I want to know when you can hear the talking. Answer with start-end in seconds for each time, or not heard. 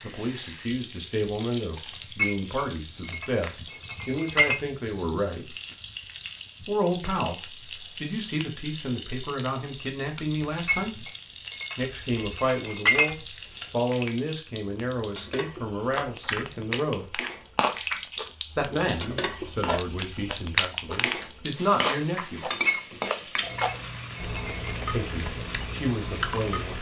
0.0-5.5, 6.6-11.1, 11.8-17.2, 18.6-22.4, 24.9-26.7.